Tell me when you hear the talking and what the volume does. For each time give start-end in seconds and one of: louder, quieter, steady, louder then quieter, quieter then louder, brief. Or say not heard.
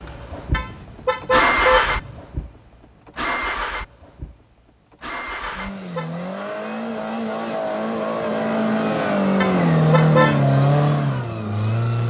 not heard.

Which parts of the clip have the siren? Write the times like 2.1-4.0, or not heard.
not heard.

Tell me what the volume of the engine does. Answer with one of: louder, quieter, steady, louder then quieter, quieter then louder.
quieter then louder.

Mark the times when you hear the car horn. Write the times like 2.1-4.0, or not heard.
0.5-2.2, 5.4-6.1, 9.4-10.4.